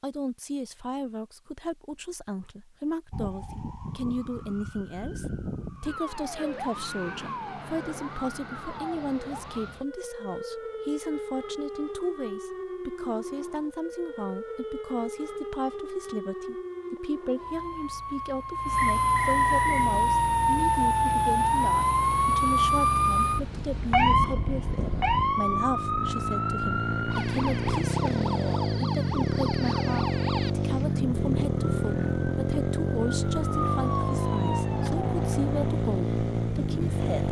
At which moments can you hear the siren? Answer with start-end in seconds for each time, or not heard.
3.1-35.8.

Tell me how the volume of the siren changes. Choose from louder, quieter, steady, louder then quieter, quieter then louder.
louder then quieter.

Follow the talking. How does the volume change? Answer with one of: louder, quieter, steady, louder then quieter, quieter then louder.
steady.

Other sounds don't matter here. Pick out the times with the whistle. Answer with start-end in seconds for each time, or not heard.
18.8-19.9.